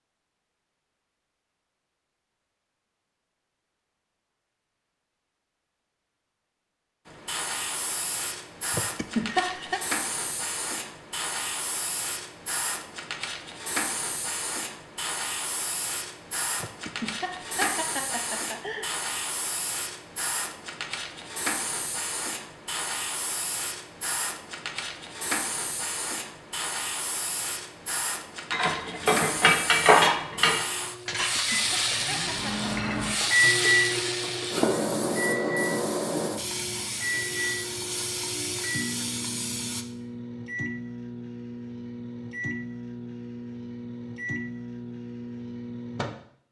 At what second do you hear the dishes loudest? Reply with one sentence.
The loudest moment of the dishes is at 30 seconds.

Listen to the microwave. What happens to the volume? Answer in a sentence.
The loudness of the microwave goes down.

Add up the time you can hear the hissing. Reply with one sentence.
The hissing can be heard for 33 seconds in total.